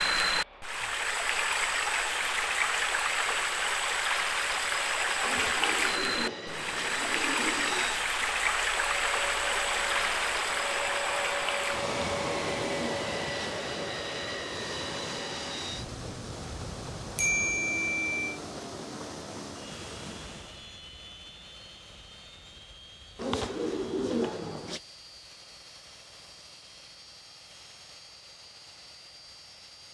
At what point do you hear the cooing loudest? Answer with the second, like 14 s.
24 s.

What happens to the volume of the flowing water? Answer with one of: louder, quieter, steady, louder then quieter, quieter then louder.
quieter.